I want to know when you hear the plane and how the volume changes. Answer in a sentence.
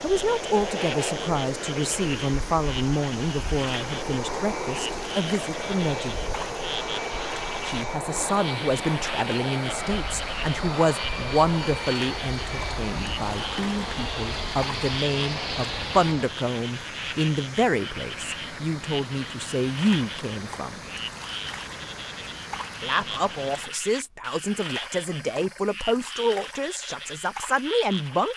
You can hear the plane from 0.0 to 16.4 s, at a steady volume.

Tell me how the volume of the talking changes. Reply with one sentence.
The loudness of the talking stays about the same.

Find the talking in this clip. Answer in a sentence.
You can hear the talking from 0.0 to 6.2 s, from 7.7 to 20.8 s and from 22.8 to 28.3 s.